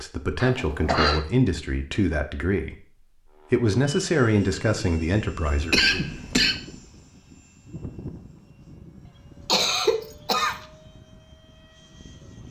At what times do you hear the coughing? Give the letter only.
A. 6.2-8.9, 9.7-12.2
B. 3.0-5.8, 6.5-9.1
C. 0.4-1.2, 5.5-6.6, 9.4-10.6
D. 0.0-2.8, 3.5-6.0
C.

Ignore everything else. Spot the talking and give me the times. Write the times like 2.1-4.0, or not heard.
0.0-2.8, 3.5-6.0.